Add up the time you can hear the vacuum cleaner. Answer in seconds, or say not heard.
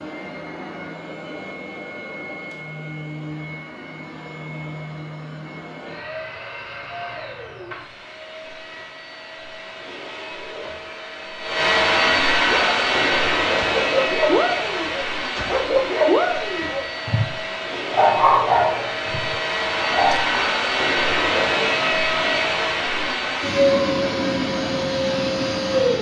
26 s.